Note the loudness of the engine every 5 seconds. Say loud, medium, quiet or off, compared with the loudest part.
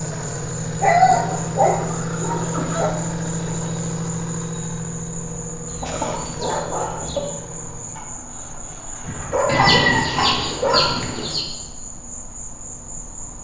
loud, medium, off.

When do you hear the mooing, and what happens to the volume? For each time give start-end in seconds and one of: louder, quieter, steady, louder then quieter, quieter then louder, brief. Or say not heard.
not heard.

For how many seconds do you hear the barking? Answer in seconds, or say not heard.
6 s.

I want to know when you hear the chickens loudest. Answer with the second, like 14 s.
10 s.